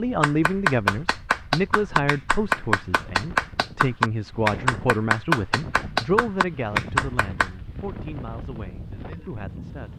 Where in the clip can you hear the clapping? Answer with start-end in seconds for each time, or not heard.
0.2-7.5.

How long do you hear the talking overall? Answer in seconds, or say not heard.
10 s.